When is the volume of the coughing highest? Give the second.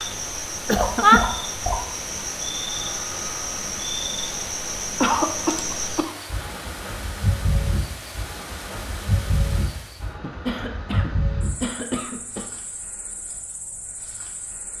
1 s.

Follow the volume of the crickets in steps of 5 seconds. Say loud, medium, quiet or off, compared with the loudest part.
loud, loud, medium.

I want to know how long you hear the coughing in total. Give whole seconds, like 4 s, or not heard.
4 s.